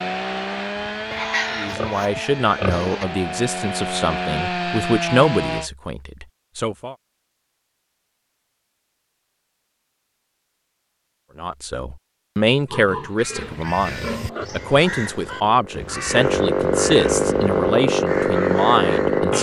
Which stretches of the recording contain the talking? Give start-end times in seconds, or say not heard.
1.5-7.0, 11.3-19.3.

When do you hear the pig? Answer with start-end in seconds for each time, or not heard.
1.1-3.0, 12.7-14.4.